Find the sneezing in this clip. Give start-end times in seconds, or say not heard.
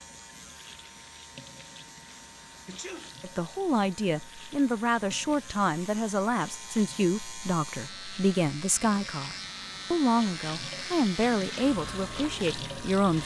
2.6-3.2.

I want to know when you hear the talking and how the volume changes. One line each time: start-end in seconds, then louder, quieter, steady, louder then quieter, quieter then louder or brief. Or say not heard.
3.2-13.2 steady.